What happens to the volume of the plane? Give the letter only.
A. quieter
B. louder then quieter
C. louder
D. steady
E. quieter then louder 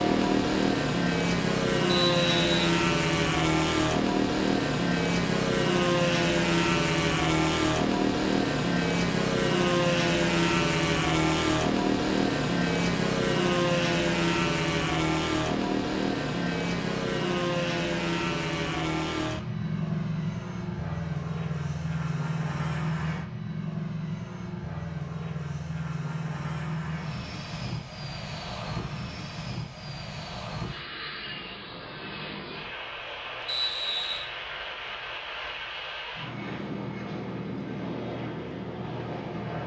A.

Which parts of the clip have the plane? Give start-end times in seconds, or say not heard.
0.0-39.6.